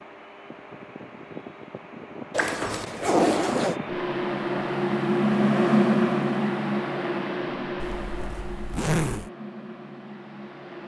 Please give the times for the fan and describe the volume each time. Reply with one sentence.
You can hear the fan from 0.0 to 10.8 s, getting louder then quieter.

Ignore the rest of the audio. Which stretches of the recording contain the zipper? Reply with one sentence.
The zipper can be heard from 2.3 to 3.8 s and from 7.8 to 9.3 s.